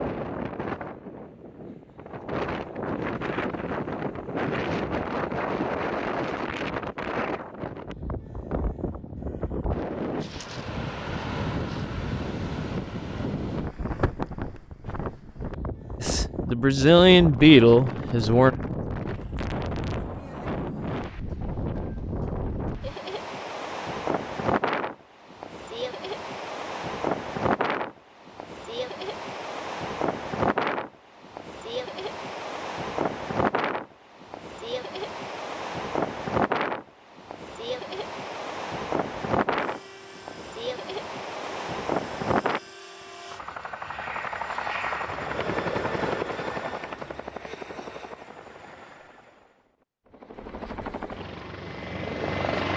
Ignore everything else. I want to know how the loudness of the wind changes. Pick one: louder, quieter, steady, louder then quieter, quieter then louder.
steady.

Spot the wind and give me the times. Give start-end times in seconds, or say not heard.
0.0-42.6.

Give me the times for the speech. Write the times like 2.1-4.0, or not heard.
16.0-18.5.